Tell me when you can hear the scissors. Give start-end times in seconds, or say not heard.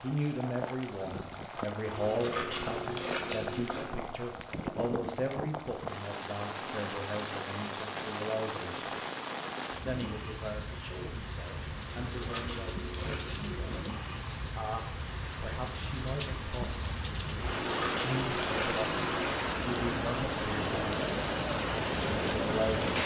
1.9-3.9, 12.0-13.8, 17.5-19.3.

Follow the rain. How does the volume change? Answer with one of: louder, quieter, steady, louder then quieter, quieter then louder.
louder.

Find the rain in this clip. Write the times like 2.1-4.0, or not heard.
0.0-23.0.